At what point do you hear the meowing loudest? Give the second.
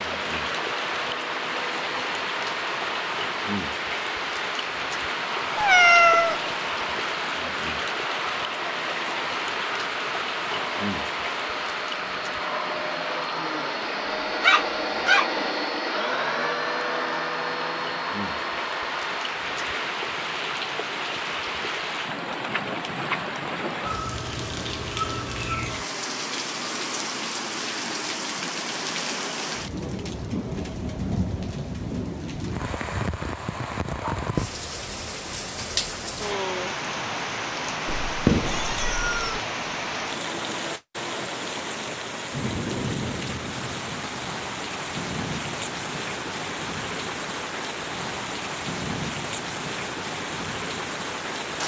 6 s.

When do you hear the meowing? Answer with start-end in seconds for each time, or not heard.
5.5-6.4, 37.9-39.4.